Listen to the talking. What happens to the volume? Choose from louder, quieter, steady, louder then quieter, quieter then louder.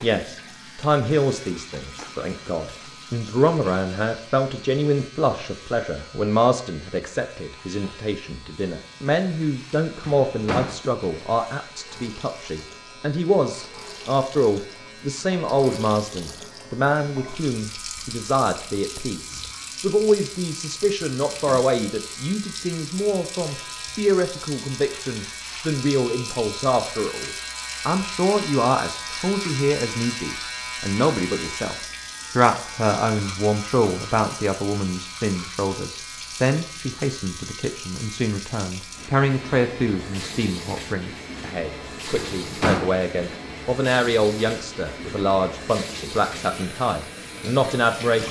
steady.